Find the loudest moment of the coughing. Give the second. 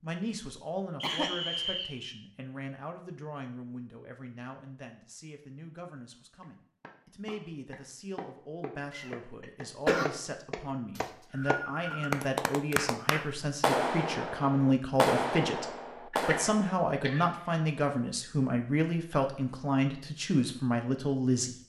10 s.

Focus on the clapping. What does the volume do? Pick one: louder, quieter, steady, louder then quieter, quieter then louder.
louder.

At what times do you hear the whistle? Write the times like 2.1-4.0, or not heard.
1.0-2.1, 10.9-12.1.